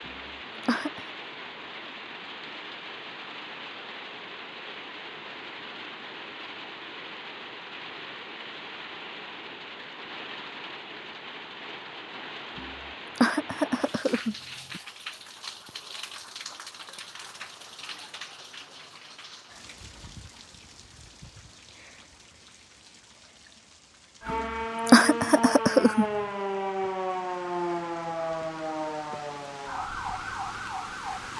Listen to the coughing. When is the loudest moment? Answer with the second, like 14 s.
25 s.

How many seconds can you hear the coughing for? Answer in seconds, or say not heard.
5 s.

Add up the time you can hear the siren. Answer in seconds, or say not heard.
7 s.